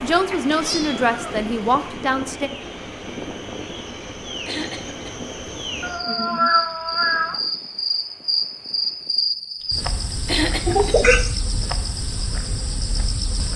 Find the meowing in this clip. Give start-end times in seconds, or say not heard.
0.3-1.9, 5.8-7.4, 10.7-11.3.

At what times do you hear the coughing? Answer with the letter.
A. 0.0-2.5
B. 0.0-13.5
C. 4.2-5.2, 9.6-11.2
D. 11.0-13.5
C.